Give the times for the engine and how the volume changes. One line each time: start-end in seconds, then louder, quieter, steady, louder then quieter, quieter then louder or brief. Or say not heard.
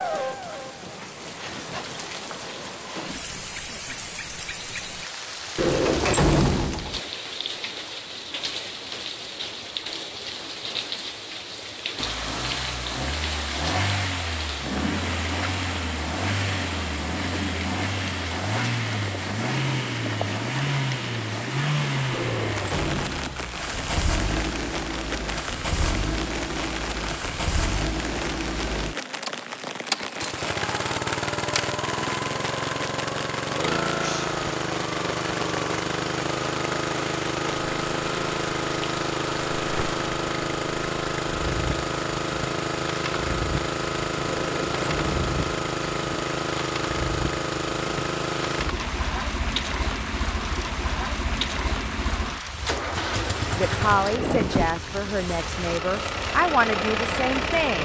11.9-57.7 steady.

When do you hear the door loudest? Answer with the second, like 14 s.
6 s.